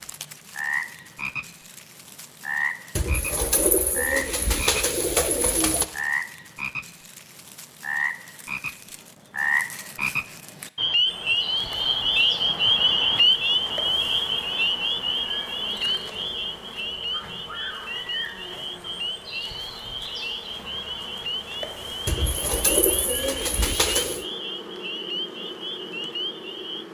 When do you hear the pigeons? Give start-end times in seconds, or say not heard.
3.0-5.8, 22.1-24.2.